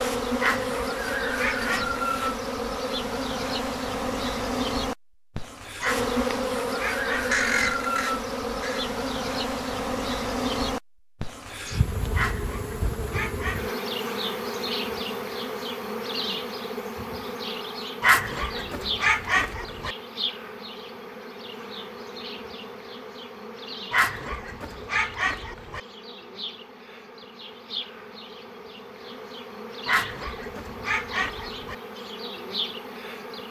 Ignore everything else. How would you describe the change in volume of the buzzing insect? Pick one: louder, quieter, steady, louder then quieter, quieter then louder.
quieter.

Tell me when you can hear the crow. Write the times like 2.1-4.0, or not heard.
7.2-8.9.